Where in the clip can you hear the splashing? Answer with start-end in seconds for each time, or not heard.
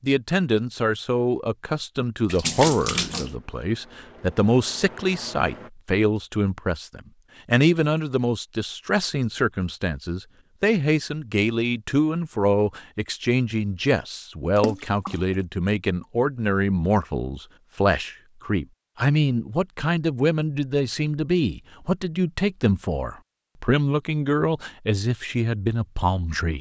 2.2-3.4, 14.6-15.2.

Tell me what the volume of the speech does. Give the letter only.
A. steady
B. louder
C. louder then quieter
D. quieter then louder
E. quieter
A.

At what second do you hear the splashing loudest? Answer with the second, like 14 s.
3 s.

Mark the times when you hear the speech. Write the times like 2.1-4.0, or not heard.
0.0-26.5.